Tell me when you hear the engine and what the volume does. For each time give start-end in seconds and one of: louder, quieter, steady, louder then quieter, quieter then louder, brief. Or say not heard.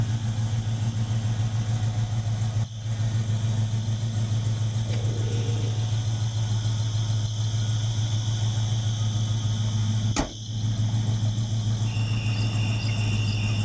0.0-13.6 steady.